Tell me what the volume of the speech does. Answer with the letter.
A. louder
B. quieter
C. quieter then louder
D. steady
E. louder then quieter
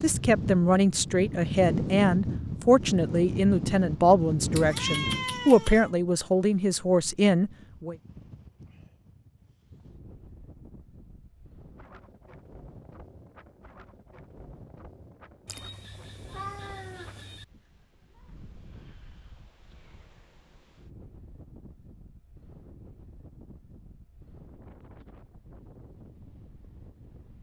D.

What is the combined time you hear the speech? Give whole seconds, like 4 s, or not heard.
8 s.